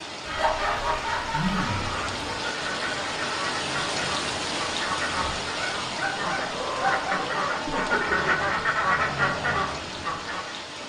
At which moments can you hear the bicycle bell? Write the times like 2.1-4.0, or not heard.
not heard.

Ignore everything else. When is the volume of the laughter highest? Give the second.
1 s.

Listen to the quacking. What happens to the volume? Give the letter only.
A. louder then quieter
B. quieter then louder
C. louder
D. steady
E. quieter
C.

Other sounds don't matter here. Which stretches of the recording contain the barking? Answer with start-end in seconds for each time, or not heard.
0.2-2.5, 5.5-7.2.